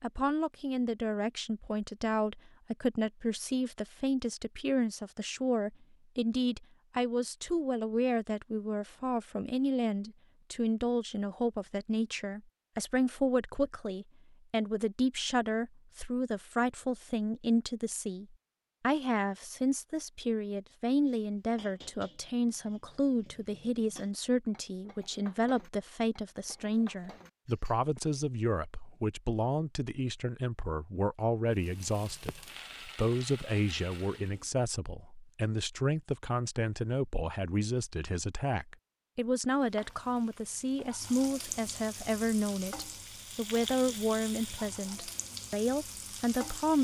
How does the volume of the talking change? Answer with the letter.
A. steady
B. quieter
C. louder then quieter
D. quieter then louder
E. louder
A.